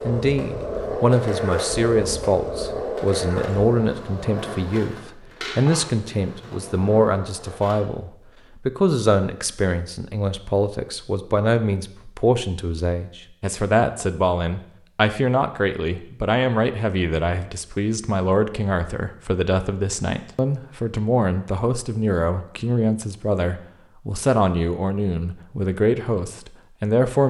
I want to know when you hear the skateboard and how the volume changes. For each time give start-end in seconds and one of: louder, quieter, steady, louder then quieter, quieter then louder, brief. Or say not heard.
0.0-7.8 quieter.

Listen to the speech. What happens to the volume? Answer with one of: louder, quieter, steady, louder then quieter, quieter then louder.
steady.